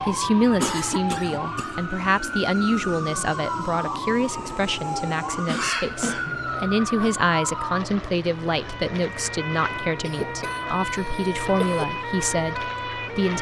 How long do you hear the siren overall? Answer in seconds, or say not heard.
13 s.